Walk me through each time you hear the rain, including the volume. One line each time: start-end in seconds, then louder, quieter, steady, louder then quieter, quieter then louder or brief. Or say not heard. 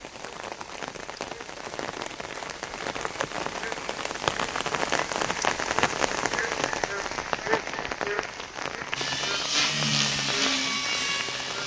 0.0-11.6 louder then quieter.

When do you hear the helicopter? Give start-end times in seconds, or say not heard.
8.9-11.6.